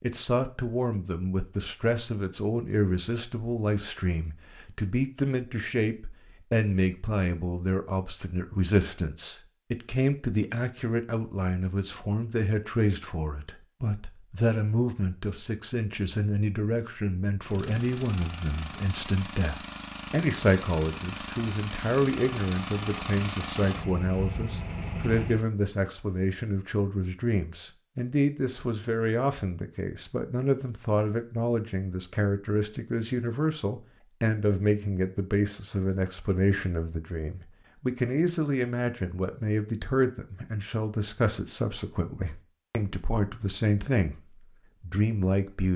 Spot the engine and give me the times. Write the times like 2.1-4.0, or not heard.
17.4-25.5.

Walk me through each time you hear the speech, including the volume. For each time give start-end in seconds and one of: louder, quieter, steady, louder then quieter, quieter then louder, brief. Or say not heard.
0.0-44.1 steady
44.8-45.7 brief.